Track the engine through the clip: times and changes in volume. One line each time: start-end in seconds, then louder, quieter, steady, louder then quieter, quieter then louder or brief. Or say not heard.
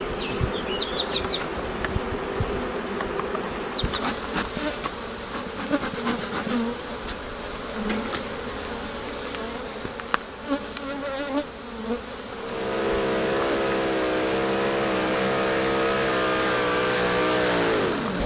12.3-18.2 steady.